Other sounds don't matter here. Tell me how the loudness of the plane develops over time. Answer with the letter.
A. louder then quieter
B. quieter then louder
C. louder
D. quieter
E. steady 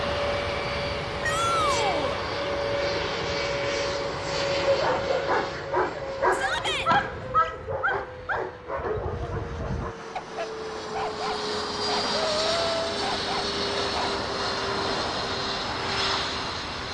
B.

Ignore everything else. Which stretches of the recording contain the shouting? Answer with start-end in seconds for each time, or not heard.
1.2-2.2, 6.3-6.9, 12.2-13.0.